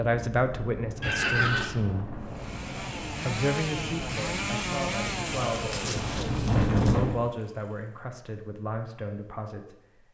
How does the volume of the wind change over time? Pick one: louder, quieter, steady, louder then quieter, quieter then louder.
louder.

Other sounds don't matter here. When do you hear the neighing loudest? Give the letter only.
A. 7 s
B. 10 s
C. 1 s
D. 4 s
C.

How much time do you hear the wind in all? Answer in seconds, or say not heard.
7 s.